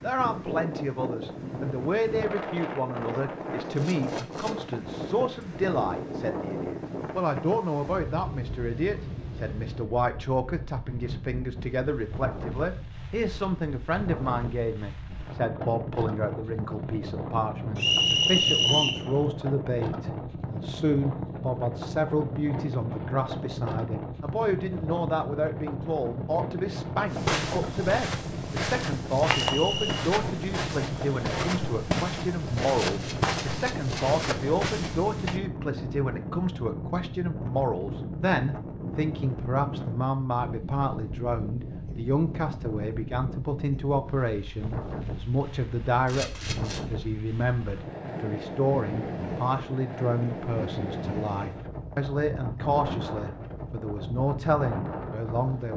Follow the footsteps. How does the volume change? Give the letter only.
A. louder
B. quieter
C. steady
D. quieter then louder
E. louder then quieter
C.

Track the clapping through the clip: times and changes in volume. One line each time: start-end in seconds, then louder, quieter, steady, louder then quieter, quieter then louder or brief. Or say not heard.
not heard.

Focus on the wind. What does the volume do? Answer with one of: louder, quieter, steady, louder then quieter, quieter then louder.
steady.